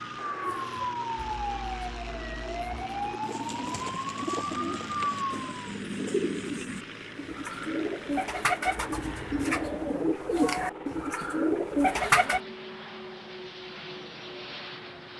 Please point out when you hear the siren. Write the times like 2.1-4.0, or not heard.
0.1-5.5.